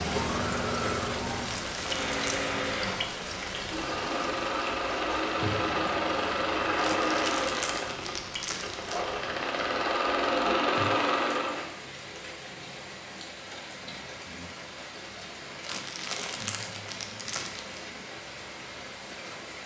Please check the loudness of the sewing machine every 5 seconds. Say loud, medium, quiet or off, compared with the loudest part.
medium, loud, loud, off.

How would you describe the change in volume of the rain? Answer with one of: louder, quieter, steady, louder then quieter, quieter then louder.
quieter.